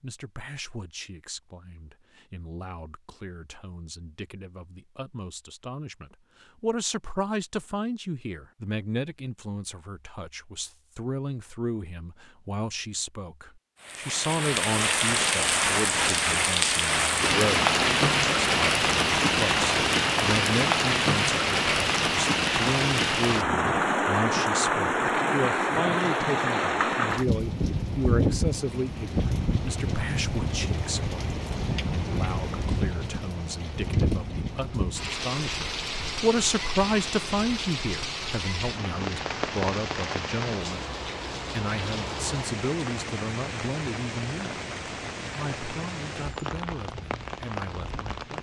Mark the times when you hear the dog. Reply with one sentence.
The dog can't be heard in this clip.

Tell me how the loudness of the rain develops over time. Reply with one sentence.
The volume of the rain goes down.